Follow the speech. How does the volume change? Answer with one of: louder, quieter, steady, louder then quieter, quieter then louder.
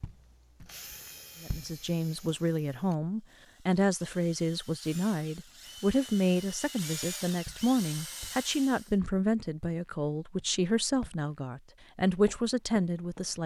steady.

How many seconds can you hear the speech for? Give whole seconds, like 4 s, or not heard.
12 s.